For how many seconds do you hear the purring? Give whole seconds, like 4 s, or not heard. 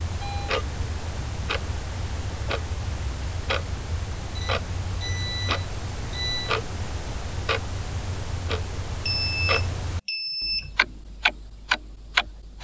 not heard.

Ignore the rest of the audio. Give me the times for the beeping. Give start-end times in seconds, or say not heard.
0.1-0.6, 4.3-6.5, 8.8-10.8.